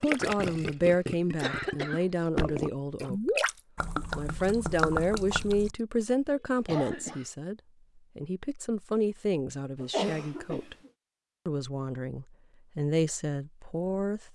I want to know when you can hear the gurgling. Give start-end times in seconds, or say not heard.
0.0-5.8.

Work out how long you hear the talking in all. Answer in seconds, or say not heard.
13 s.